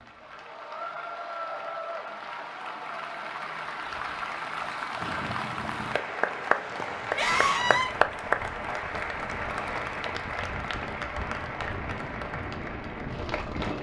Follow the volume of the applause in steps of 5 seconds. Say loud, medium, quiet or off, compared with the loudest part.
medium, loud, medium.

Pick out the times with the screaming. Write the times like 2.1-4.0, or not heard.
7.2-7.9.